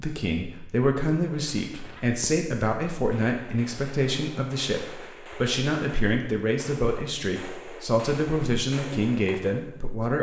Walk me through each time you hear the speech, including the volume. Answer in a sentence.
You can hear the speech from 0.0 to 10.1 s, at a steady volume.